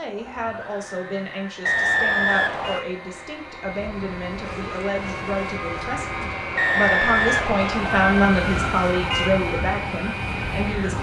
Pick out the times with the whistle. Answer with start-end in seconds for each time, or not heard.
1.6-2.8, 6.5-8.1.